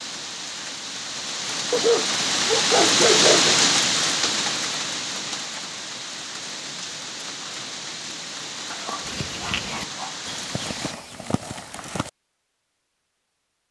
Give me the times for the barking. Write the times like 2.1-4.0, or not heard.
1.7-3.6, 8.7-10.2.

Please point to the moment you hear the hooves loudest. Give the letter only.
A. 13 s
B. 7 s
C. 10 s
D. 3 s
C.